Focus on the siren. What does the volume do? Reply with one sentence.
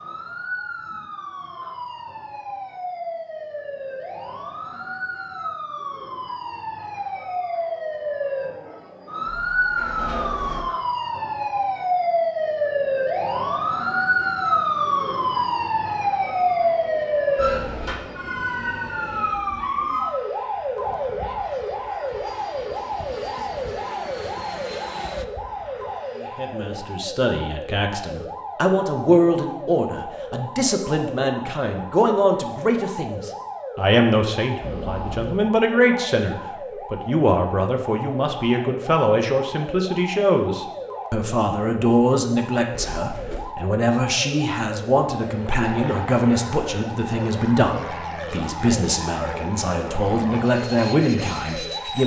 The loudness of the siren goes up, then down.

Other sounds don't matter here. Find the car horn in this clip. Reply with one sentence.
The car horn can be heard from 34.6 to 35.5 s.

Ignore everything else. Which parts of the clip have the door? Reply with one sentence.
You can hear the door from 9.4 to 10.7 s, from 17.4 to 18.0 s and from 42.7 to 43.5 s.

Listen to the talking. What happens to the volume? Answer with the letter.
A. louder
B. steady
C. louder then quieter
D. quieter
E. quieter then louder
B.